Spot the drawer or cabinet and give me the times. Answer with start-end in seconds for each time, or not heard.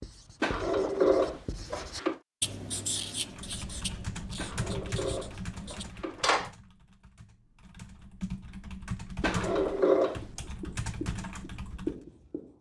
0.4-2.2, 4.3-6.5, 9.2-10.2.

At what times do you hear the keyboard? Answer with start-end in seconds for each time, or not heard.
3.2-12.0.